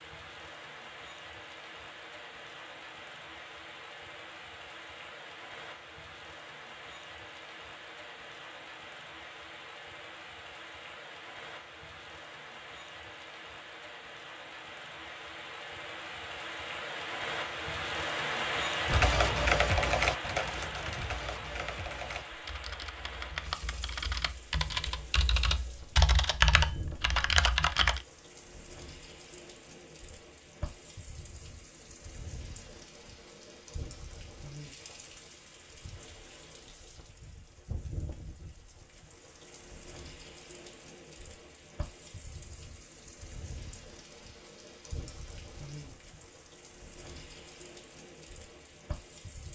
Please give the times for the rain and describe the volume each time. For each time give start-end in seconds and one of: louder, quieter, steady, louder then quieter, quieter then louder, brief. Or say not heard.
0.0-49.4 louder then quieter.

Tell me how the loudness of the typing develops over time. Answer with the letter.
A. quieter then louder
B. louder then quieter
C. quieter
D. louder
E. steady
A.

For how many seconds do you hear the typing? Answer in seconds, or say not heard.
9 s.